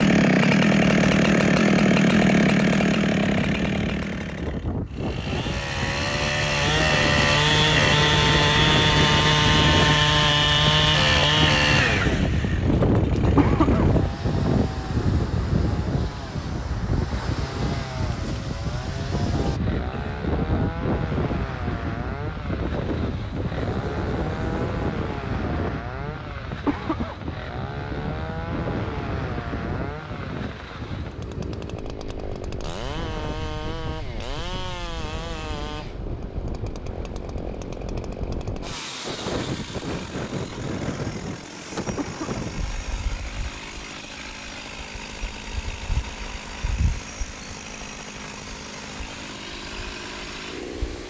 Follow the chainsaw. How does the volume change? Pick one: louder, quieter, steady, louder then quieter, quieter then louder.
quieter.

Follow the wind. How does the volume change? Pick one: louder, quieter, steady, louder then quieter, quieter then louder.
quieter.